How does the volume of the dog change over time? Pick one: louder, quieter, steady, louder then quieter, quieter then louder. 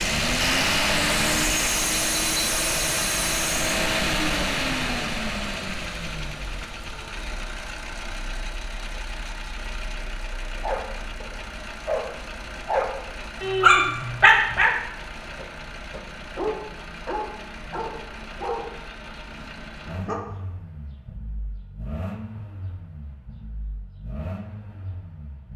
louder then quieter.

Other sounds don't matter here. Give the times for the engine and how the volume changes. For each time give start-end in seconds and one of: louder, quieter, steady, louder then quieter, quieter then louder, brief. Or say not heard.
0.0-25.5 quieter.